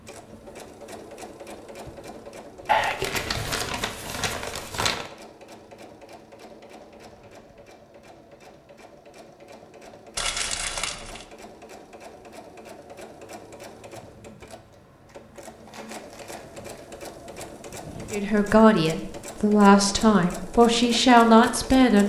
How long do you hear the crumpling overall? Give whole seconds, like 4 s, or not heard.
5 s.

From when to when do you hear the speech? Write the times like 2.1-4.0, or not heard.
18.1-22.0.